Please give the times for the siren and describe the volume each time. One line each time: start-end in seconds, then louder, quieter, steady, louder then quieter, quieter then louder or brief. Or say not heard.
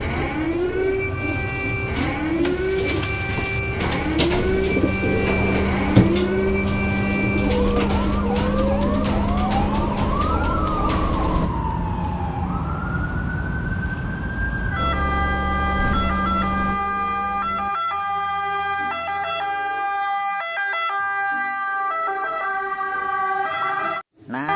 0.0-24.5 steady.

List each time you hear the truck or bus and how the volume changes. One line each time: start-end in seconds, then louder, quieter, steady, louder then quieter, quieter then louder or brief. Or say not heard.
0.0-11.5 louder
14.8-17.7 brief.